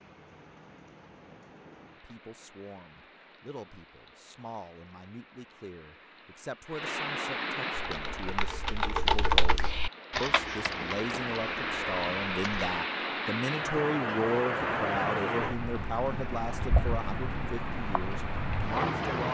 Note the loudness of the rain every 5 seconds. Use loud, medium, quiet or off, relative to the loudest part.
quiet, medium, loud, loud.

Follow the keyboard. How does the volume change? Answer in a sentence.
The loudness of the keyboard goes up, then down.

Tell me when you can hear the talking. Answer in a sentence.
The talking can be heard from 1.9 to 19.2 s.